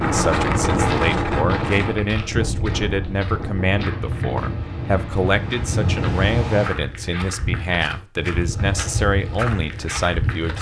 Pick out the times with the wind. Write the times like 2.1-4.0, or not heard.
0.0-6.8.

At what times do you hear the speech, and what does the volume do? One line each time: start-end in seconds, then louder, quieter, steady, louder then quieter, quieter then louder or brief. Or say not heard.
0.0-10.5 steady.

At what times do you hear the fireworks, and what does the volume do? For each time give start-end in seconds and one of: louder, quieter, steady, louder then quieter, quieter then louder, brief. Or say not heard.
not heard.